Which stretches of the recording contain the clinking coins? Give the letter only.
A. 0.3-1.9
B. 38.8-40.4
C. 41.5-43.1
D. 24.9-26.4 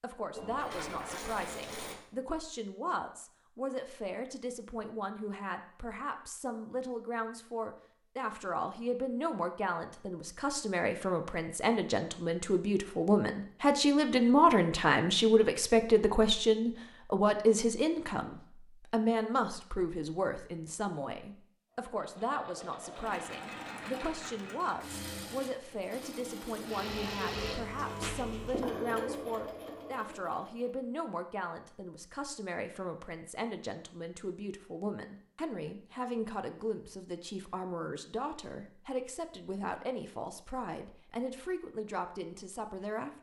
A.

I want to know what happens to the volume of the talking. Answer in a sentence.
The loudness of the talking goes up, then down.